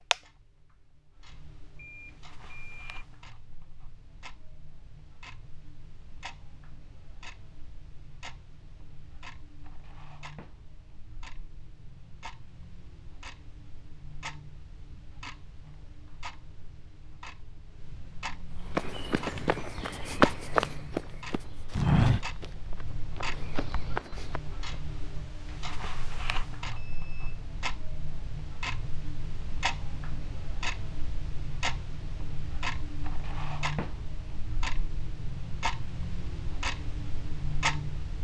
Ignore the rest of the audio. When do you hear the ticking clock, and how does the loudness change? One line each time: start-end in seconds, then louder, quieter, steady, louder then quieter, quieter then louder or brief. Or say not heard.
0.0-38.1 louder.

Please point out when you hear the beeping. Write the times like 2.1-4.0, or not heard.
1.8-3.0, 26.7-27.4.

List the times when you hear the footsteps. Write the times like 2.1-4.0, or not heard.
18.7-24.8.